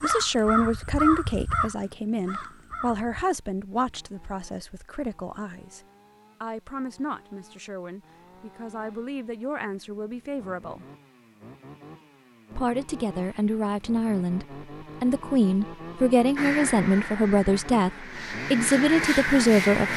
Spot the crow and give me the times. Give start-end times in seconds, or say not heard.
0.0-3.2, 16.4-19.9.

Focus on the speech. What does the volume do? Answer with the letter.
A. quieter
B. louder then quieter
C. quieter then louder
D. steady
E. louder
C.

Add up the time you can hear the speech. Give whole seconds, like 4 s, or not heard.
18 s.